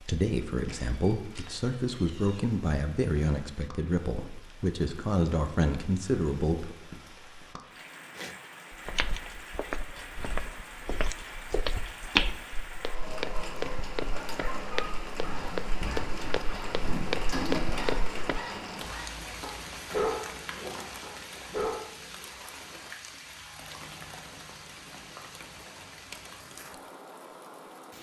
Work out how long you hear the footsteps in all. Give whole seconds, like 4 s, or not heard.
10 s.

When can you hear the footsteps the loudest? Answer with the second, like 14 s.
12 s.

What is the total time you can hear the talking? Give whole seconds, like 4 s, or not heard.
7 s.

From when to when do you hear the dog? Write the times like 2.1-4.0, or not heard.
12.8-22.3.